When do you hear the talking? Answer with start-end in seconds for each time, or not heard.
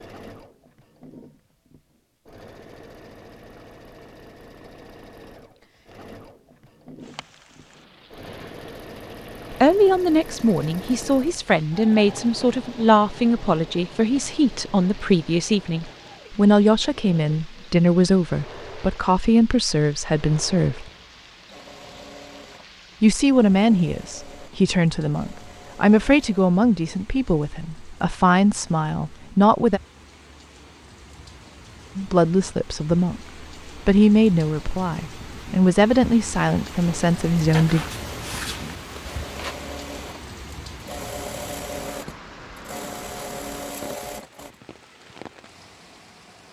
9.5-20.9, 23.0-29.8, 31.9-33.2, 33.9-37.9.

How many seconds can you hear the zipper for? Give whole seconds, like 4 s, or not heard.
2 s.